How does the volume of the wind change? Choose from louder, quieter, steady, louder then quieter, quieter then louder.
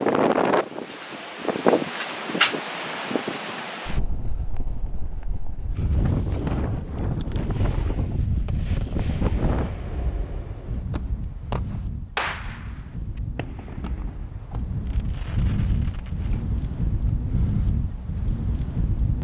quieter then louder.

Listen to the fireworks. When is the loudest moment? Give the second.
12 s.